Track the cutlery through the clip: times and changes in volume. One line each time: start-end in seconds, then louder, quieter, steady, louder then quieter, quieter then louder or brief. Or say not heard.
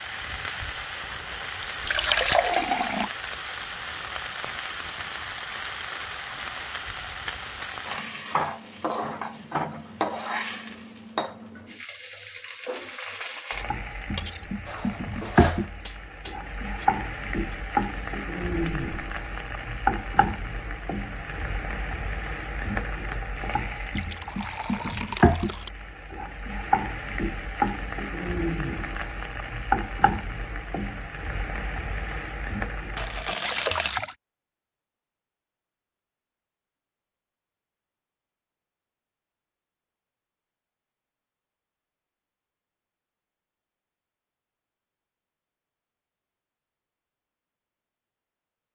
14.2-18.9 louder then quieter.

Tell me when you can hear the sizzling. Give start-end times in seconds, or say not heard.
0.0-33.9.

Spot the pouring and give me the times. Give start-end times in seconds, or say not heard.
1.9-3.1, 23.9-25.7, 33.4-34.1.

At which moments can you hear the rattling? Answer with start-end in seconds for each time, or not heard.
33.0-34.0.